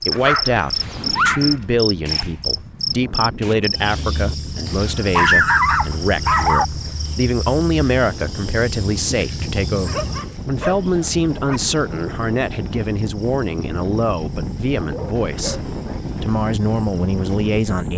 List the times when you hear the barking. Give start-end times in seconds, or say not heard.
0.1-1.6, 4.8-6.7, 9.8-11.6, 14.3-16.0.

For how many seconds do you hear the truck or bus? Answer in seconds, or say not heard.
not heard.